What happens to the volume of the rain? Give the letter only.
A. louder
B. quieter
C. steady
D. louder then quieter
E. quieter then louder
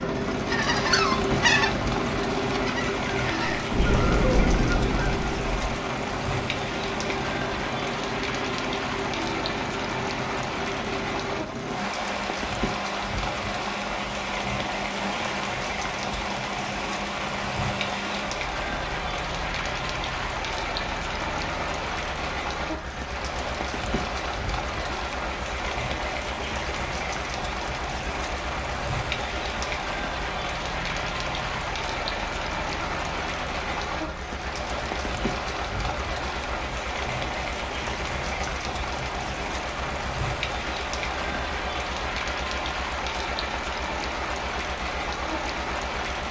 C.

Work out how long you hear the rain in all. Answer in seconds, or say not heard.
46 s.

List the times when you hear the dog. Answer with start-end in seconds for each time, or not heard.
not heard.